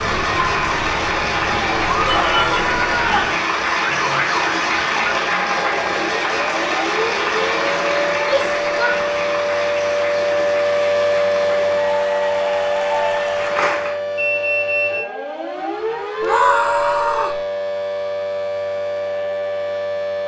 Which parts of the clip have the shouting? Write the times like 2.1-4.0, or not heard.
2.0-3.4, 8.2-9.0, 16.2-17.4.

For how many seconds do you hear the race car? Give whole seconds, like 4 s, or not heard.
not heard.